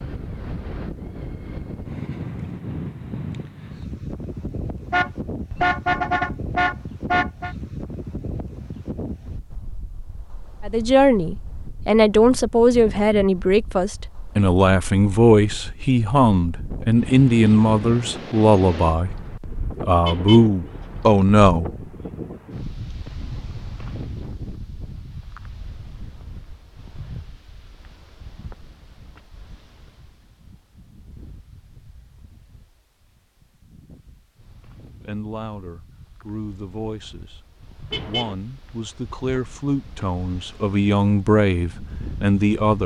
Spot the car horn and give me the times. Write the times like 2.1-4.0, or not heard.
4.9-7.5, 20.1-20.5, 37.9-38.4.